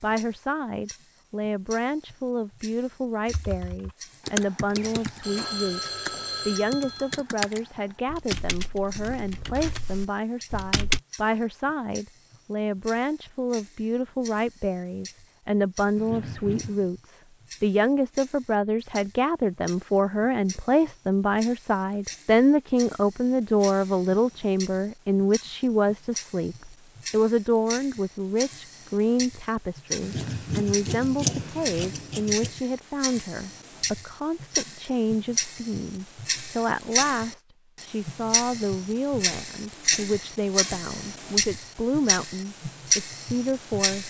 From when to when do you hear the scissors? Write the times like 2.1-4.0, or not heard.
15.9-16.9, 30.0-32.5.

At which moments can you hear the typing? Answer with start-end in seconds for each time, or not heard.
3.3-11.0.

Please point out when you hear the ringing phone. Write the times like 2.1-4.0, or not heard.
4.8-7.2.